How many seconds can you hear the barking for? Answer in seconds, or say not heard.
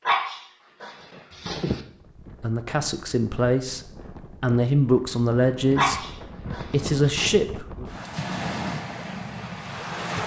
3 s.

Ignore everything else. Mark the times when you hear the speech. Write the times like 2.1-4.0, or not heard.
2.4-7.8.